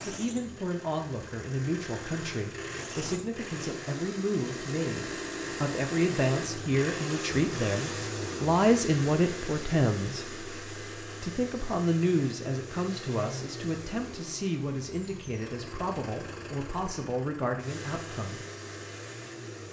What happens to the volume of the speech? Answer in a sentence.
The loudness of the speech goes up, then down.